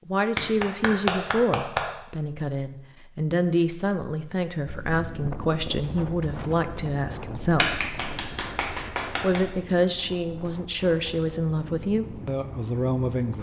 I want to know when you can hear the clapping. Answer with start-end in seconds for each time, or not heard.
0.3-1.8, 7.5-9.4.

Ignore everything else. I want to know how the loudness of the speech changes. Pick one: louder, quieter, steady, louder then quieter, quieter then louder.
steady.